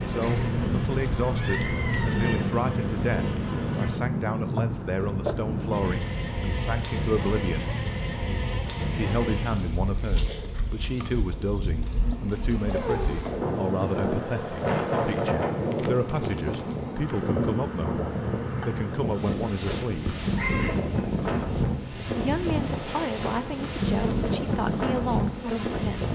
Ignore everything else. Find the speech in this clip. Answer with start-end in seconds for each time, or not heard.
0.1-7.7, 8.9-20.1, 22.1-26.1.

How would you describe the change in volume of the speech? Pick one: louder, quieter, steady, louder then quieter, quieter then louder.
steady.